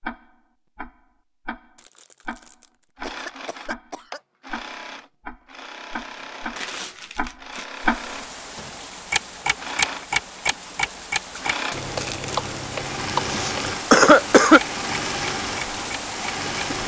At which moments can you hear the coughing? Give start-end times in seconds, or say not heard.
3.0-4.2, 13.3-14.6.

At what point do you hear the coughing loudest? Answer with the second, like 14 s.
14 s.